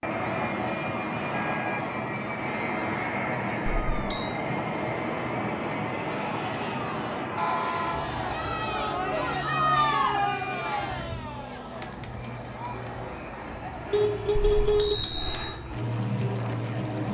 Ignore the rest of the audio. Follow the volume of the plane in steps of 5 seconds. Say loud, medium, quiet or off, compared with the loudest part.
loud, loud, medium, loud.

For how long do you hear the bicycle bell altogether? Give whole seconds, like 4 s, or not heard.
2 s.